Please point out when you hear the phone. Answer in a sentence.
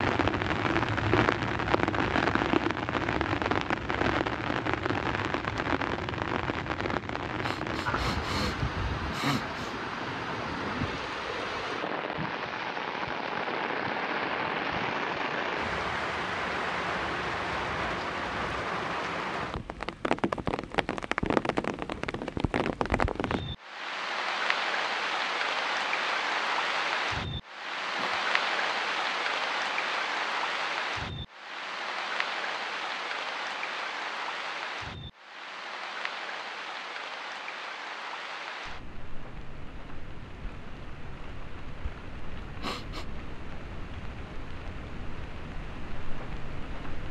You can't hear the phone here.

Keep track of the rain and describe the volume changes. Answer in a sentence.
The loudness of the rain goes down.